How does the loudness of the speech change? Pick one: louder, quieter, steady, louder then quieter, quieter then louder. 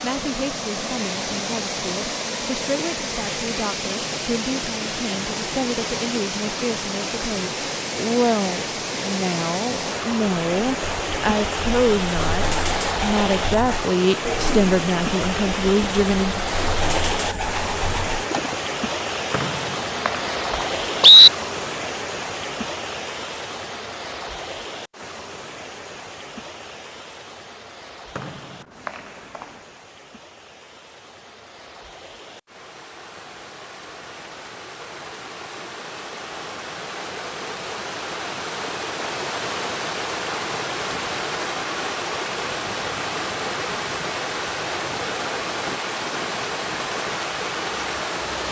louder.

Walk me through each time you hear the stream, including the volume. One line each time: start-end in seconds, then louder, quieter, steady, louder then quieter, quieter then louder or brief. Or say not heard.
0.0-48.4 quieter then louder.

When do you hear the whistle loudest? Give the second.
21 s.